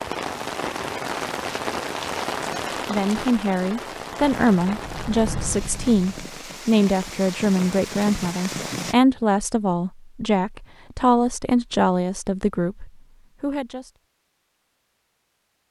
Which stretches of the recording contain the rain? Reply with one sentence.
You can hear the rain from 0.0 to 8.9 s.